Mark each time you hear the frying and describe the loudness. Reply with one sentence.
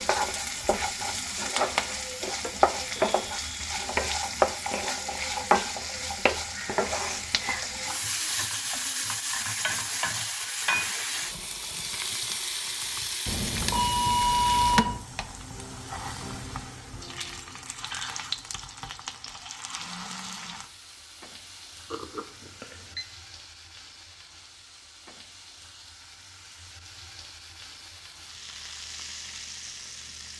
You can hear the frying from 0.0 to 30.3 s, getting quieter.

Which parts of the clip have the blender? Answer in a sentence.
You can't hear the blender here.